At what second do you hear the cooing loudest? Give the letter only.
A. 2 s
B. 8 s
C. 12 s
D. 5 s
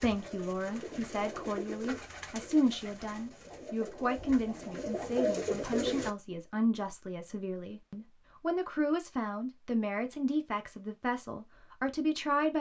D.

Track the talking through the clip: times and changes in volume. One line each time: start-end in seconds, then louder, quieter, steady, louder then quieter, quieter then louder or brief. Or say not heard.
0.0-12.5 steady.